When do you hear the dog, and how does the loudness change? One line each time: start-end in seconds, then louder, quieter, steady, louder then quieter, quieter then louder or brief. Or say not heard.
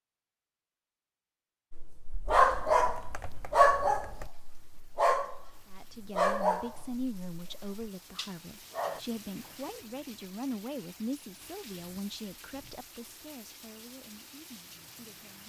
1.7-9.0 quieter.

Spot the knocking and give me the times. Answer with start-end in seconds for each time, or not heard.
not heard.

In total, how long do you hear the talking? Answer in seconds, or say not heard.
10 s.